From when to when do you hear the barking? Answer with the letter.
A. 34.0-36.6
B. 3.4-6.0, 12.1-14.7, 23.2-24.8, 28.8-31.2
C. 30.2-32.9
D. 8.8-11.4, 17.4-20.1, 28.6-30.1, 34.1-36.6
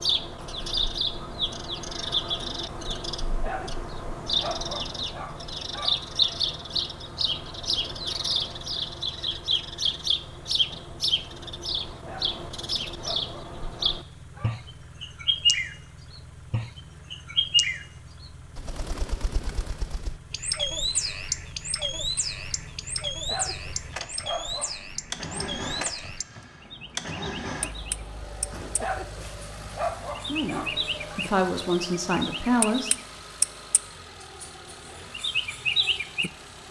B.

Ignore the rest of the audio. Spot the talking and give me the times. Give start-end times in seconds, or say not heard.
30.2-32.9.